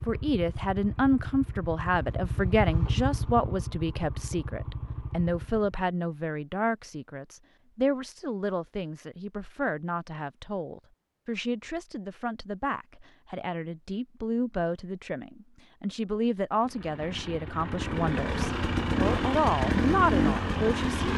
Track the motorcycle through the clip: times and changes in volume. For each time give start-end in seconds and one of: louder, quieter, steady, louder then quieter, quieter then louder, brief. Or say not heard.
0.0-5.8 louder then quieter
16.6-21.1 louder.